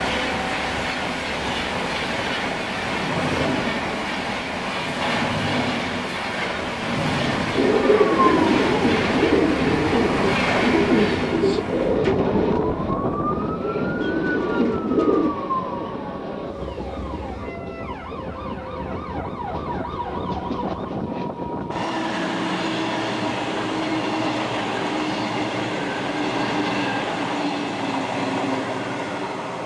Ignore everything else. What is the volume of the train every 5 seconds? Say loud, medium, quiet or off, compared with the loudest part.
loud, loud, loud, medium, loud, loud.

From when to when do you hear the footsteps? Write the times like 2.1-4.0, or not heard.
not heard.